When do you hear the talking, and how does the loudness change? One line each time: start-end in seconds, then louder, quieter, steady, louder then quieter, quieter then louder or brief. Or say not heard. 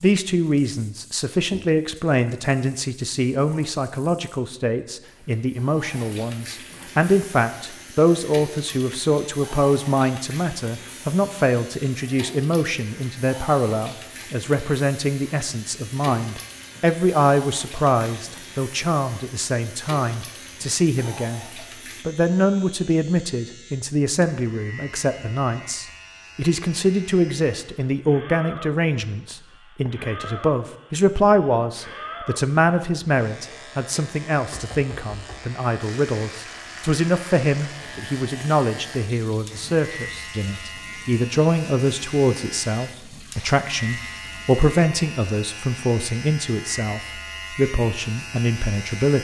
0.0-49.1 steady.